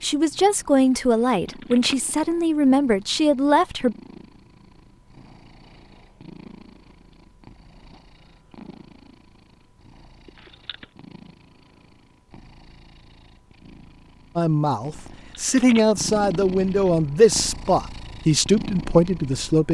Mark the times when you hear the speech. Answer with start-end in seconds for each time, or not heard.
0.0-4.0, 14.3-19.6.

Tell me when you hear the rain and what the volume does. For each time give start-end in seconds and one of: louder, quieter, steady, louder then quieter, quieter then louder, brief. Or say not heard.
not heard.